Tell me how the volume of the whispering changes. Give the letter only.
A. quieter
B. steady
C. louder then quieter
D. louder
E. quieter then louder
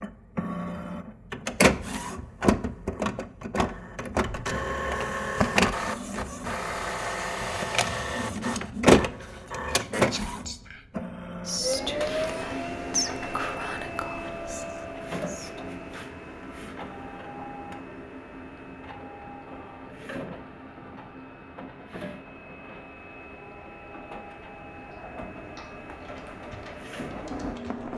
C.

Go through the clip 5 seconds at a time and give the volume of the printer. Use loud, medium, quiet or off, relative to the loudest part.
loud, loud, medium, quiet, quiet, quiet.